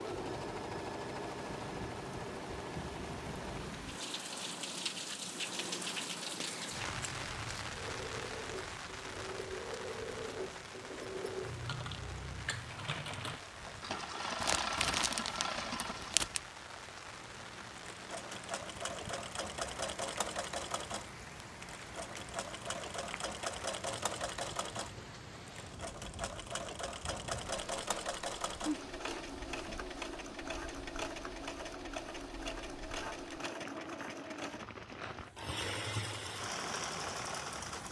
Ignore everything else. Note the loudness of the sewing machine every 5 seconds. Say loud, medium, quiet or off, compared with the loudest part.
loud, medium, loud, loud, loud, loud, loud, loud.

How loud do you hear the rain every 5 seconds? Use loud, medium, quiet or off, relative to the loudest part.
loud, loud, medium, medium, medium, medium, medium, medium.